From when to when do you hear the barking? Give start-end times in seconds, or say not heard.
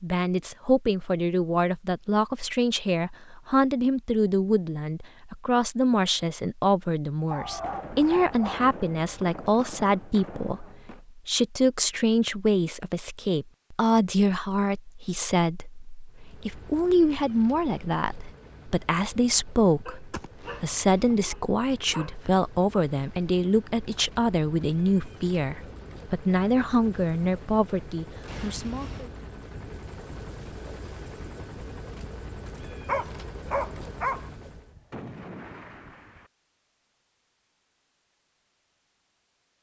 7.2-8.7, 19.9-22.1, 32.9-34.3.